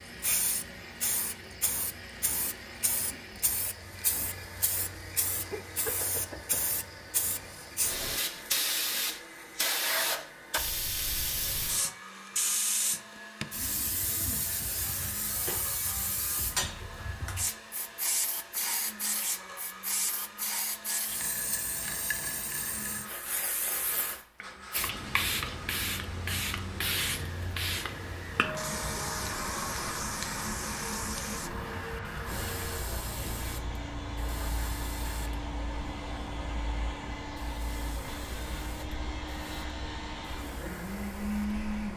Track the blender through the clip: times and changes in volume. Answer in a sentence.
You can hear the blender from 0.0 to 41.9 s, getting louder.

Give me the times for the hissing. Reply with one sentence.
You can hear the hissing from 0.0 to 41.9 s.